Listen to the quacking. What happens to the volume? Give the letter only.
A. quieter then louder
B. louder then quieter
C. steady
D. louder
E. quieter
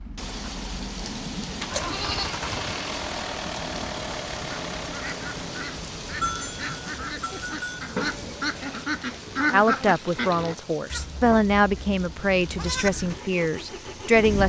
D.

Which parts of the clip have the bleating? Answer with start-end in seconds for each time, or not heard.
1.7-2.8, 6.2-7.8, 10.9-12.9.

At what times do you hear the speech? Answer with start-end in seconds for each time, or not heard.
9.5-14.4.